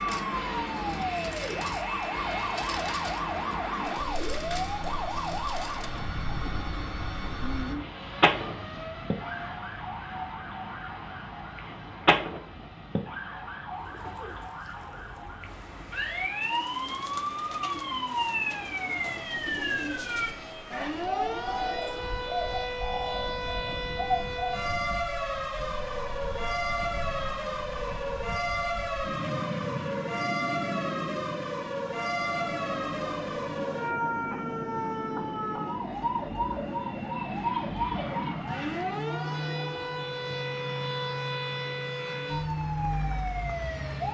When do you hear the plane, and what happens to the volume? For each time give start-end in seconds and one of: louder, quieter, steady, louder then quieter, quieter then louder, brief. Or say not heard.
0.0-44.0 quieter then louder.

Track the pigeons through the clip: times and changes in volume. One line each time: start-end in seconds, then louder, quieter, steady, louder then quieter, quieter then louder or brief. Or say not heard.
13.7-24.6 louder.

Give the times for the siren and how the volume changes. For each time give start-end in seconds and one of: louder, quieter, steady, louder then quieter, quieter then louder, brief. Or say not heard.
0.0-44.0 steady.